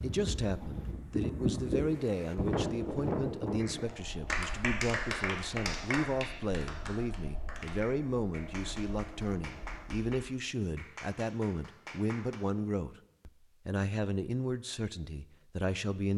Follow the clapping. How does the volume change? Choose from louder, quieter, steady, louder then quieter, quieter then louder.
quieter.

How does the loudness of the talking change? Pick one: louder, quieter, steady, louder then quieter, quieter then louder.
steady.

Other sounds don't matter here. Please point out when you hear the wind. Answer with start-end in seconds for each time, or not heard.
0.0-10.1.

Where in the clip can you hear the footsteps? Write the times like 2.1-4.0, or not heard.
not heard.